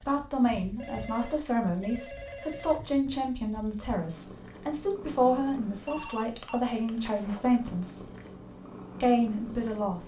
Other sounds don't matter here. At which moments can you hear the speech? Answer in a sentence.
The speech can be heard from 0.1 to 8.0 s and from 9.0 to 10.0 s.